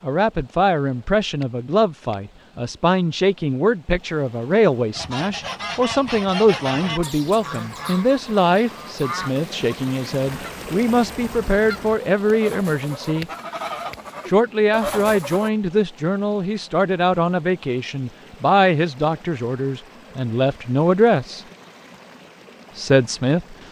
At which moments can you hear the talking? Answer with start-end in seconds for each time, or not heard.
0.0-13.2, 14.2-21.4, 22.8-23.6.